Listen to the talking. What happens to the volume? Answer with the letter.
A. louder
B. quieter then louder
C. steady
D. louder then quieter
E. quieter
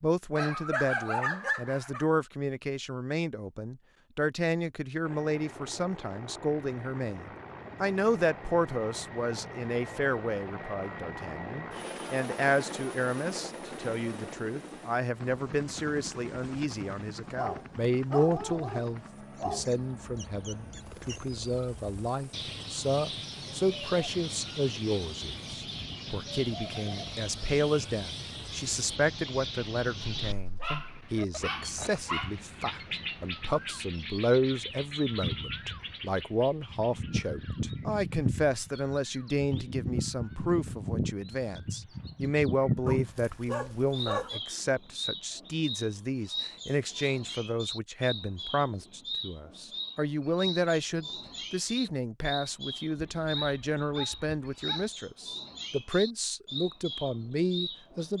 C.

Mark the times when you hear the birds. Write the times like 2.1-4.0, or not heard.
19.4-58.1.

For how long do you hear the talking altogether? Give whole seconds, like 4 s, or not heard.
58 s.